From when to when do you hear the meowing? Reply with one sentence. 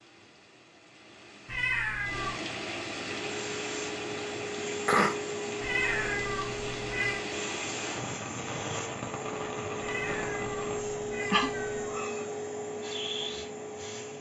The meowing can be heard from 1.4 to 2.4 s, from 5.6 to 7.2 s and from 9.8 to 12.1 s.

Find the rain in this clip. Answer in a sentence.
You can hear the rain from 0.0 to 10.8 s.